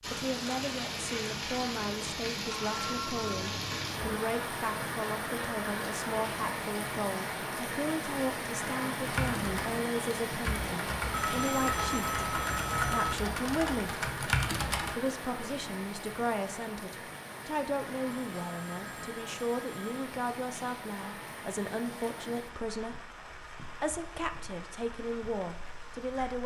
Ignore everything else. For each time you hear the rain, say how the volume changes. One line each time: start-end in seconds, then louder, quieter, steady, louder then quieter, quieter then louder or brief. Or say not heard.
0.0-26.4 quieter.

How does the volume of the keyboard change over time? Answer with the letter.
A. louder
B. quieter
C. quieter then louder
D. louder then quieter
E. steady
A.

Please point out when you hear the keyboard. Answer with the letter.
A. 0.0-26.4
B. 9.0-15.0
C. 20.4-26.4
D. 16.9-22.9
B.